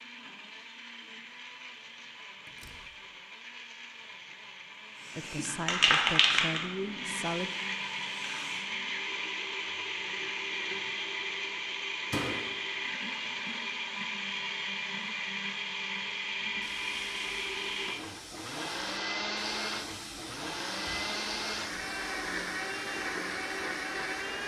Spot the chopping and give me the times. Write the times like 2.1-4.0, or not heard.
not heard.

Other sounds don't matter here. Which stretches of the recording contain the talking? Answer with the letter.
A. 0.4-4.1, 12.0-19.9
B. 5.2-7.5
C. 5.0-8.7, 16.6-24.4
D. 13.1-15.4
B.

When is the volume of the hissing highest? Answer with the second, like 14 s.
6 s.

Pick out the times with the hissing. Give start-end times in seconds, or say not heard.
5.0-8.7, 16.6-24.4.